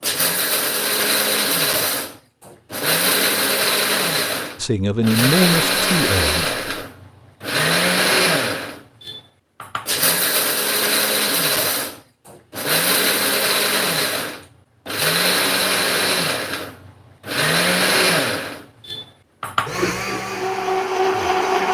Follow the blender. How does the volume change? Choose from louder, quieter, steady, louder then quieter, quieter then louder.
steady.